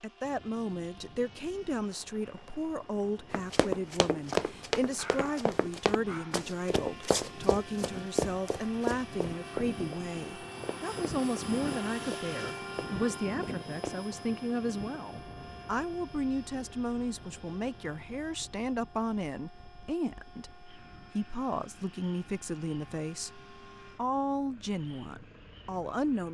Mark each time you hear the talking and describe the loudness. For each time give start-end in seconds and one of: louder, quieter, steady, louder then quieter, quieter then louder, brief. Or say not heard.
0.0-26.2 steady.